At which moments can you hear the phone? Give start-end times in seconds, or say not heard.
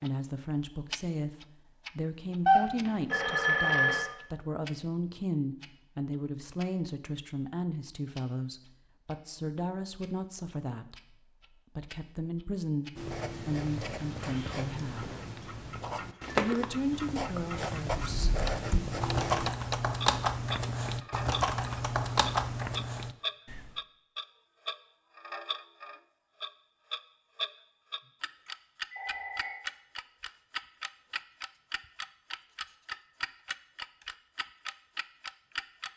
2.5-4.0, 28.4-29.6.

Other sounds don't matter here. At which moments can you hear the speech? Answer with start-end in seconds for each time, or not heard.
0.0-11.0, 11.8-15.2, 16.2-18.4.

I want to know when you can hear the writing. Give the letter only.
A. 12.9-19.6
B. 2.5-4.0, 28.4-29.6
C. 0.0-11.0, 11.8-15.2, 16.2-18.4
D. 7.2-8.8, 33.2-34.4
A.